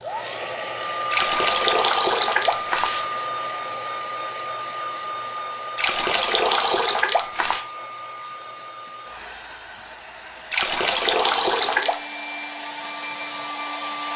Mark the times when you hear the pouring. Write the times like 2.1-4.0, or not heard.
1.1-3.0, 5.8-7.7, 10.5-12.0.